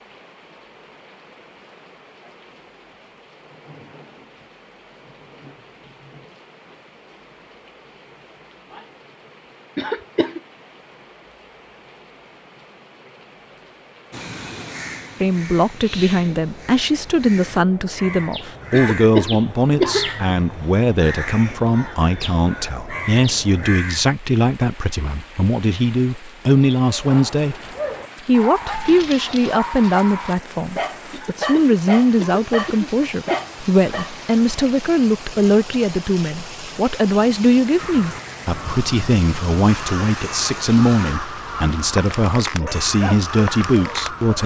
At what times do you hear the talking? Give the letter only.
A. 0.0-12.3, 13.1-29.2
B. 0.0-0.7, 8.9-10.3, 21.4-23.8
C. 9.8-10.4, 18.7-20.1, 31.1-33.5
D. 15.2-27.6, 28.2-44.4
D.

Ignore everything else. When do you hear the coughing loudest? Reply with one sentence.
The volume of the coughing peaks at 20 seconds.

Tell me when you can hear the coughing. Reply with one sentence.
You can hear the coughing from 9.8 to 10.4 s, from 18.7 to 20.1 s and from 31.1 to 33.5 s.